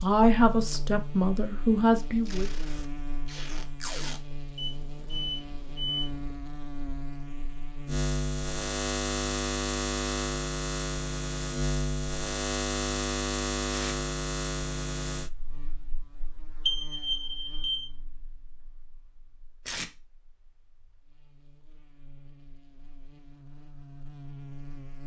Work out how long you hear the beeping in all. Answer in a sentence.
You can hear the beeping for 3 seconds altogether.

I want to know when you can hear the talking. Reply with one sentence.
You can hear the talking from 0.0 to 2.5 s.